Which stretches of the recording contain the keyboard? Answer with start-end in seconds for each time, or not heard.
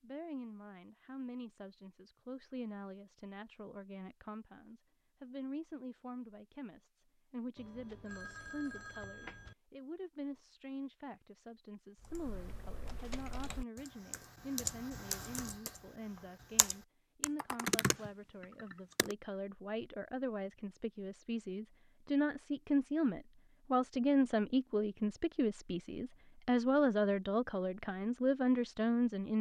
11.9-19.1.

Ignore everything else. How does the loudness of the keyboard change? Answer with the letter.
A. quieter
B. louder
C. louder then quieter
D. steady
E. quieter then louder
B.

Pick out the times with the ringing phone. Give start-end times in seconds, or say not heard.
7.5-9.6.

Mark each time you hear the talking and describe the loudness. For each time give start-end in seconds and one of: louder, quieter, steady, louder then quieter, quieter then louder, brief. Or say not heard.
0.0-29.3 louder.